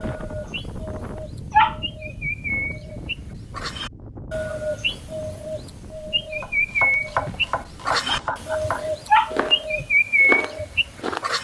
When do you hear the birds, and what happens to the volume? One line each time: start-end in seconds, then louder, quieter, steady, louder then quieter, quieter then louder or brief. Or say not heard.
0.0-11.4 louder.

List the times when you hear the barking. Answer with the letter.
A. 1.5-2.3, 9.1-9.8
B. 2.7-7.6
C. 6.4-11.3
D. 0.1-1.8
A.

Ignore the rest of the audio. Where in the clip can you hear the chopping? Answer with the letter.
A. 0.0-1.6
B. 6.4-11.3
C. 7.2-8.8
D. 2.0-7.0
B.